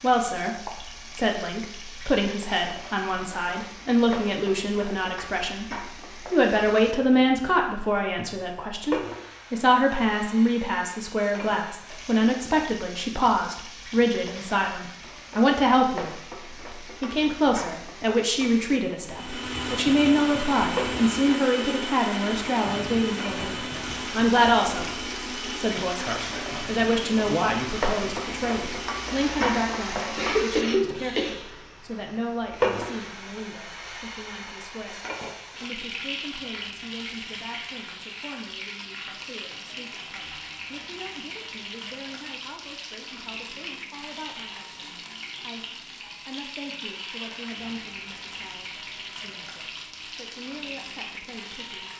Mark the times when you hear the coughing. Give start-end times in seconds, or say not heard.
30.1-31.6.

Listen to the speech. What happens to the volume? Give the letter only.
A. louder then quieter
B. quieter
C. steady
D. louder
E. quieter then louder
B.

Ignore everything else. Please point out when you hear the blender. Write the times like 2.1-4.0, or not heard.
19.0-31.6.